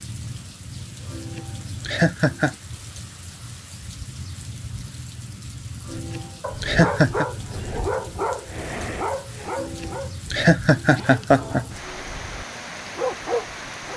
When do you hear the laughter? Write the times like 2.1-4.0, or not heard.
1.1-2.5, 5.9-7.2, 9.6-11.7.